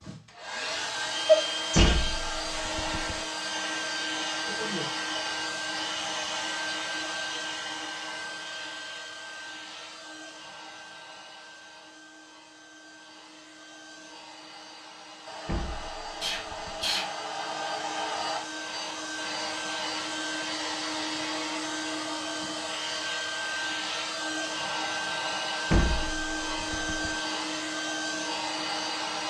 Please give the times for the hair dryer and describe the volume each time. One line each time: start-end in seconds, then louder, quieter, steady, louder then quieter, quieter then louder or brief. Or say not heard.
0.0-29.2 quieter then louder.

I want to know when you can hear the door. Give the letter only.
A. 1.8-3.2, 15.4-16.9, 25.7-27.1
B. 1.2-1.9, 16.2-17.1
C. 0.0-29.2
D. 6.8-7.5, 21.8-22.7
A.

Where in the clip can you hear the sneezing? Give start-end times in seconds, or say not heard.
1.2-1.9, 16.2-17.1.